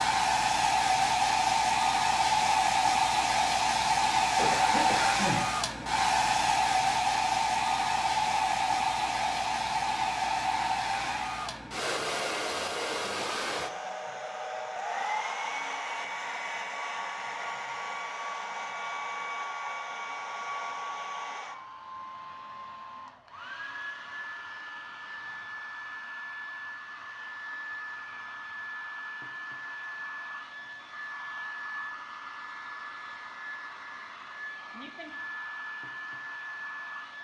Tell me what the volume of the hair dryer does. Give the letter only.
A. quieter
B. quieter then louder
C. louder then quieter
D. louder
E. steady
A.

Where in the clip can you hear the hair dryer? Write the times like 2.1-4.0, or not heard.
0.0-37.1.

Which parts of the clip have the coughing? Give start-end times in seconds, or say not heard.
4.3-5.8.